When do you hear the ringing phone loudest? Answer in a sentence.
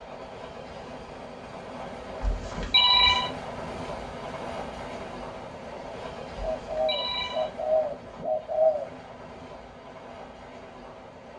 The volume of the ringing phone peaks at 3 seconds.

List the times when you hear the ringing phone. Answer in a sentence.
The ringing phone can be heard from 2.2 to 3.3 s and from 6.6 to 7.5 s.